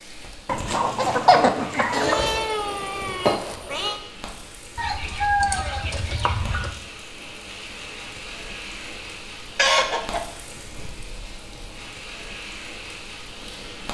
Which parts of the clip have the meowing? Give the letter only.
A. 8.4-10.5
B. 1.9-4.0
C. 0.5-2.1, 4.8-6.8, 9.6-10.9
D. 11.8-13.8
B.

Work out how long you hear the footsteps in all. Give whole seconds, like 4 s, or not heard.
not heard.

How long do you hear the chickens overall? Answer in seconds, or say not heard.
5 s.